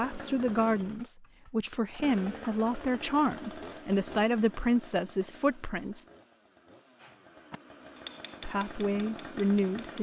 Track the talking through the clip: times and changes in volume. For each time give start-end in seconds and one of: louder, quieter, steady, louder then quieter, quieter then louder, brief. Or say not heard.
0.0-6.0 steady
8.4-9.9 brief.